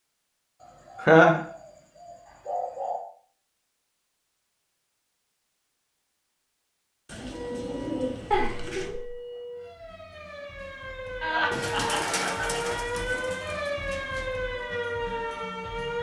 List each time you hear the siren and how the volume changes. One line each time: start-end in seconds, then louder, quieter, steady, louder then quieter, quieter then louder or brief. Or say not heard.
7.3-15.9 louder.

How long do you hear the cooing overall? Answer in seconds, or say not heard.
7 s.